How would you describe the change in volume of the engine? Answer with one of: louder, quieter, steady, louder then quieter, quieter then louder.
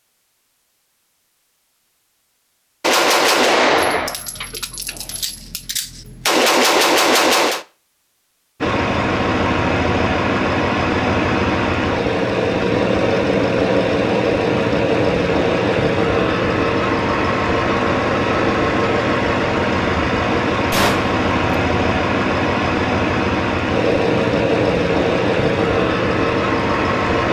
steady.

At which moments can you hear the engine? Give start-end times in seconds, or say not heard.
8.6-27.2.